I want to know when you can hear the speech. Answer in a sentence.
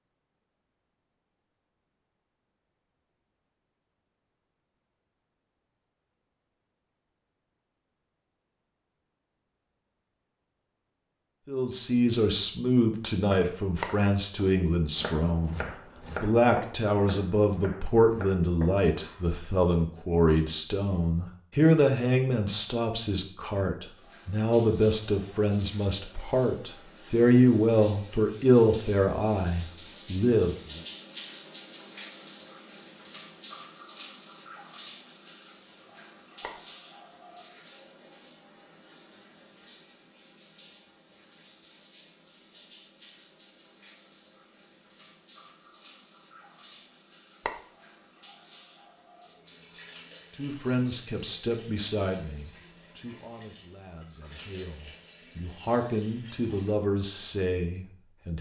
The speech can be heard from 11.4 to 30.8 s and from 50.4 to 58.3 s.